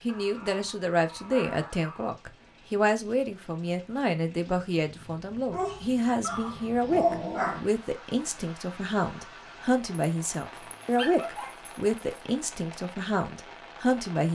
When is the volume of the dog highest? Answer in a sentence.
The loudest moment of the dog is at 7 seconds.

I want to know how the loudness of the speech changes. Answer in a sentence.
The loudness of the speech stays about the same.